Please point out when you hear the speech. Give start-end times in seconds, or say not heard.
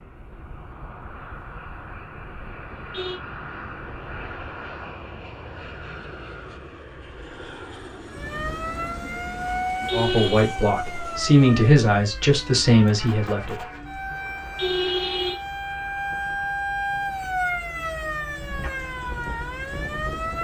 9.9-13.6.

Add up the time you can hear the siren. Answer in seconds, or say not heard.
12 s.